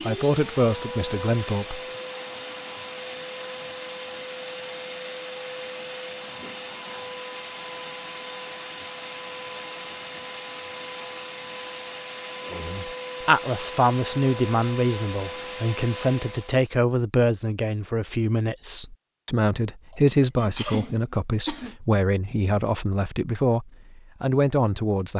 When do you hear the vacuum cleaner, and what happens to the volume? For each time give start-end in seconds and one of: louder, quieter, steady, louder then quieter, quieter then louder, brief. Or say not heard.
0.0-16.6 steady.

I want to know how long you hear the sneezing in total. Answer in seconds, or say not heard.
2 s.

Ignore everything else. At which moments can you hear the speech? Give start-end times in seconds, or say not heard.
0.1-1.8, 12.5-25.1.